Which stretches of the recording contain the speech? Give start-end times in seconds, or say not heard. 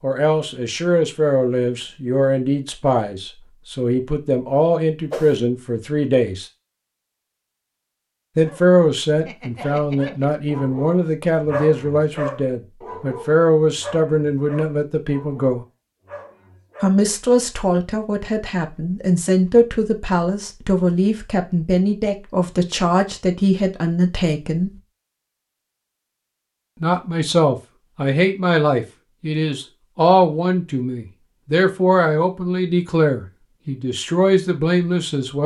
0.0-6.5, 8.3-15.7, 16.8-24.7, 26.8-35.4.